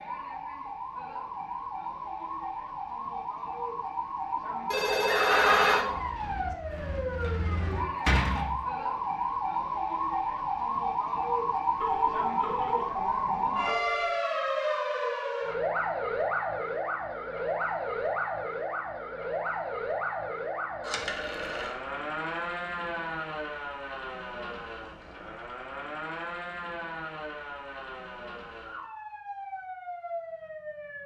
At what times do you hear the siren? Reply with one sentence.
You can hear the siren from 0.0 to 31.0 s.